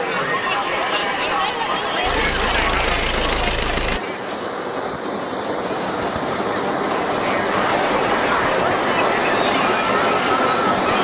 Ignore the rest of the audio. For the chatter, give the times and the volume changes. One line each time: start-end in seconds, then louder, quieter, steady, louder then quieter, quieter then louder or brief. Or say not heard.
0.0-10.9 quieter then louder.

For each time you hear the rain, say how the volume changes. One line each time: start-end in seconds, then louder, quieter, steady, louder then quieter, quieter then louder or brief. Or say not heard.
0.0-10.9 louder.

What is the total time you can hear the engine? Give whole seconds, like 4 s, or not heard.
2 s.